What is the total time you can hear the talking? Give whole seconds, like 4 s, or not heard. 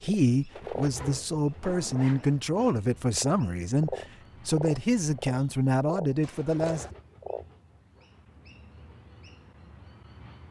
7 s.